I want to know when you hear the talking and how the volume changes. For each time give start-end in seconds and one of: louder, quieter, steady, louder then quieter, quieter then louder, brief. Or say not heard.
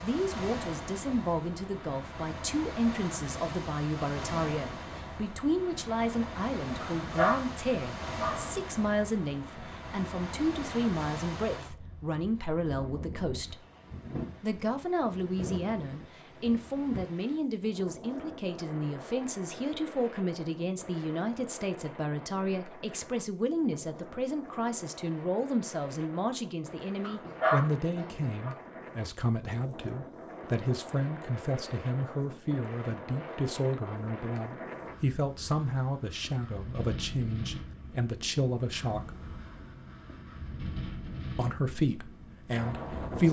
0.0-13.7 steady
14.4-39.1 steady
41.4-43.2 brief.